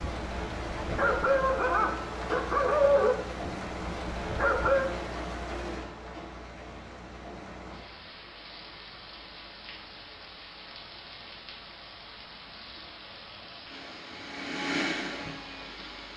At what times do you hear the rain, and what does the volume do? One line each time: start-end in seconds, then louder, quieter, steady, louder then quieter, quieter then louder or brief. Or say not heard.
0.0-16.1 quieter.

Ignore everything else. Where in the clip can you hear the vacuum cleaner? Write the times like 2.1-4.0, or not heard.
13.7-16.1.